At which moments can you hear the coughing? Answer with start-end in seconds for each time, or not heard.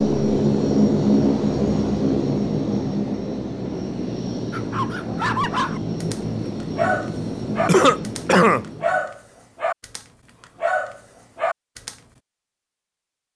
7.7-8.7.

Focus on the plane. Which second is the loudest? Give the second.
1 s.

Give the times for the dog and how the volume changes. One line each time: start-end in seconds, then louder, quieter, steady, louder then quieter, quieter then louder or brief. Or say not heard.
4.5-11.9 steady.